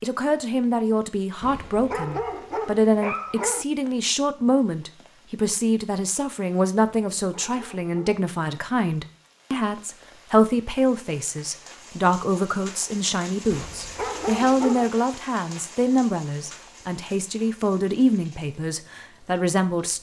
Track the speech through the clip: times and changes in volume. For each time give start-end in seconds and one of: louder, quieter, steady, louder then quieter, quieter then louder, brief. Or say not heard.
0.0-19.9 steady.